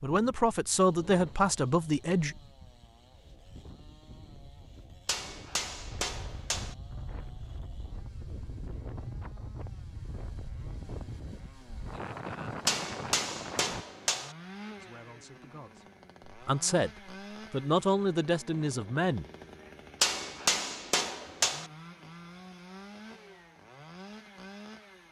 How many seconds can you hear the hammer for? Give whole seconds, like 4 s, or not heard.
5 s.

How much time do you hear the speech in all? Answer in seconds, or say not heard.
7 s.